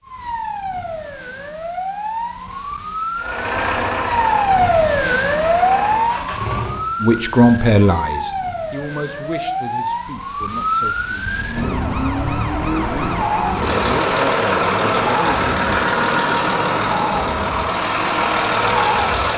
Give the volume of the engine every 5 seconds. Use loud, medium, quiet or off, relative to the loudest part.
medium, medium, loud, loud.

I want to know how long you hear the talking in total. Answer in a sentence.
You can hear the talking for 7 seconds altogether.